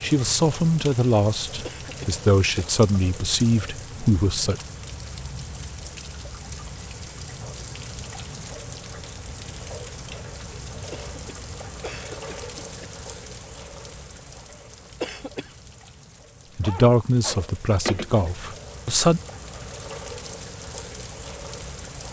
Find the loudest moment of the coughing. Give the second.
15 s.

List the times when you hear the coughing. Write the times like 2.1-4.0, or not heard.
1.6-2.6, 10.9-12.9, 15.0-15.6.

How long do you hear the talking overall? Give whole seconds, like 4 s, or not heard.
7 s.